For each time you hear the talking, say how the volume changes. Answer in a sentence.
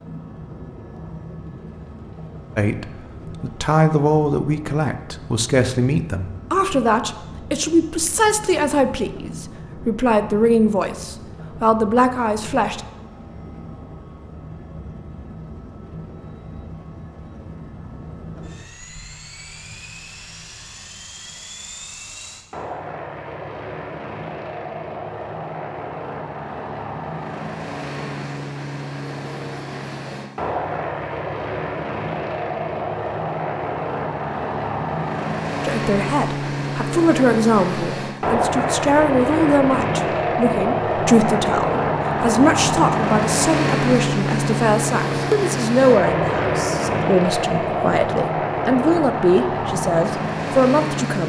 You can hear the talking from 2.5 to 12.8 s, at a steady volume; and from 35.6 to 51.2 s, at a steady volume.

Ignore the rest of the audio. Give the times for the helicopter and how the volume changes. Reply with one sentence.
You can hear the helicopter from 0.0 to 51.2 s, getting louder.